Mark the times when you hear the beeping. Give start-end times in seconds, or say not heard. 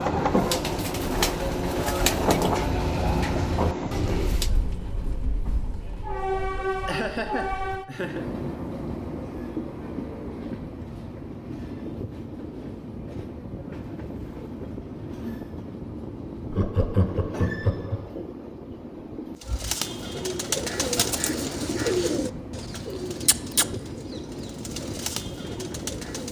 not heard.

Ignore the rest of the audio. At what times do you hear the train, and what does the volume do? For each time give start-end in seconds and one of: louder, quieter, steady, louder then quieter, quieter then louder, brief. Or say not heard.
0.0-26.2 quieter.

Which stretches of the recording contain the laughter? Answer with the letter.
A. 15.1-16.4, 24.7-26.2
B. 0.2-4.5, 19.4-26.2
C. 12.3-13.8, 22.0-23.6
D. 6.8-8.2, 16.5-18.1
D.